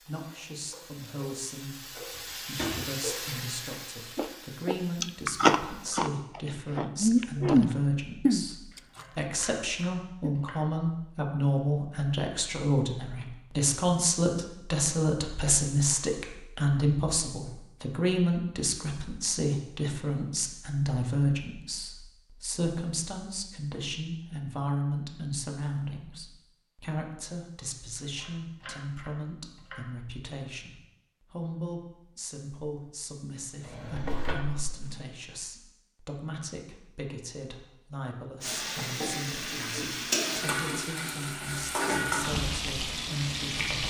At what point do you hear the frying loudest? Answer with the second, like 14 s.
42 s.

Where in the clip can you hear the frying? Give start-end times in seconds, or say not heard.
0.0-6.0, 38.4-43.8.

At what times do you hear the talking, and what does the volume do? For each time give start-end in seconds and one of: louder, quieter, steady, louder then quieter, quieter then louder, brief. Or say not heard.
0.1-43.8 louder then quieter.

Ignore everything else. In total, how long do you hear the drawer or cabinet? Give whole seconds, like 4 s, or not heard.
2 s.